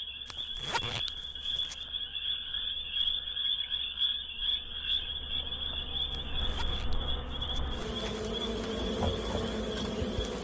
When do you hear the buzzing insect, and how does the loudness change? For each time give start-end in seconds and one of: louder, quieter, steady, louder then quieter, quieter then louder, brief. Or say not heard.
0.0-10.3 louder.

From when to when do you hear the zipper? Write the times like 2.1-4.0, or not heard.
0.2-1.9, 6.1-8.2.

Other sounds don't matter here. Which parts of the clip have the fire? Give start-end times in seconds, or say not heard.
not heard.